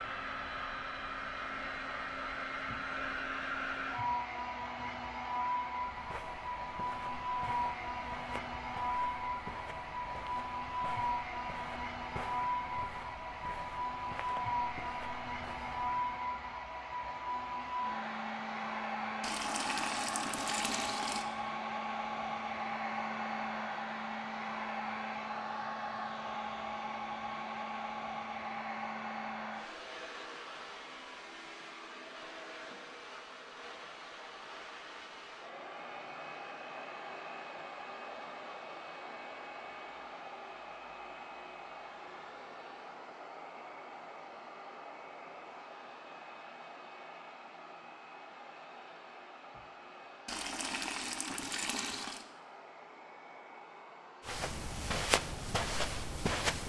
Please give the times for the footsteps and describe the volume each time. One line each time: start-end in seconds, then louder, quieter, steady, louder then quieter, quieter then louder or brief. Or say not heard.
5.8-16.2 steady
54.2-56.6 brief.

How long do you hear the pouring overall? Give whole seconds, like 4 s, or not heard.
4 s.